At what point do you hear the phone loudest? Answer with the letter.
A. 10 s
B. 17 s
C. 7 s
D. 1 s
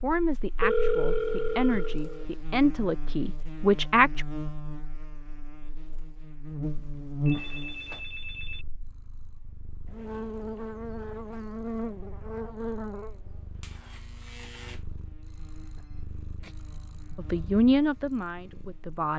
D.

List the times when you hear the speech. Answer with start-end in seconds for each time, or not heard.
0.0-4.2, 17.1-19.1.